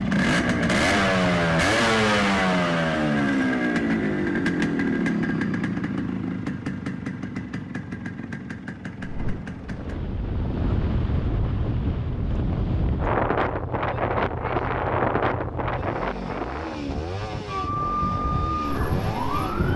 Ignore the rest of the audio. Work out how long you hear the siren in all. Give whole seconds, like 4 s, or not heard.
2 s.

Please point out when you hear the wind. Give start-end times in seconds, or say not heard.
9.0-19.7.